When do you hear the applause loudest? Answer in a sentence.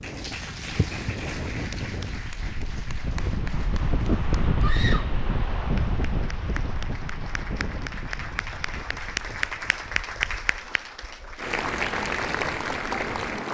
The volume of the applause peaks at 12 seconds.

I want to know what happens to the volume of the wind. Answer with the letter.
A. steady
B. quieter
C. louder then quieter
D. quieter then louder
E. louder
C.